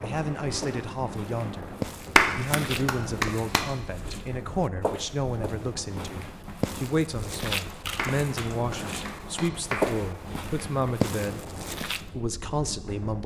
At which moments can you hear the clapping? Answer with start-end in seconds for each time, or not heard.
2.1-3.6, 8.0-9.9.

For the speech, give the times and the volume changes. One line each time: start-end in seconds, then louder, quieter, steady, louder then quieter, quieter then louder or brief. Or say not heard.
0.0-13.2 steady.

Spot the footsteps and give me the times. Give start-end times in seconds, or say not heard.
0.0-12.1.